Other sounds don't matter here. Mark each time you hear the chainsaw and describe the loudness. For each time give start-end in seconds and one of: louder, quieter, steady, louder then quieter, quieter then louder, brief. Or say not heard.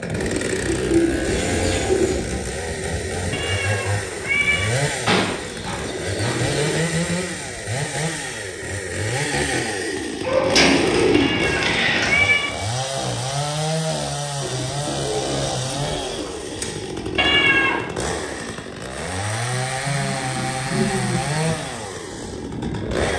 0.0-23.1 steady.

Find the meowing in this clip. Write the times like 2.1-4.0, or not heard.
3.3-4.7, 11.1-12.5, 17.1-17.9.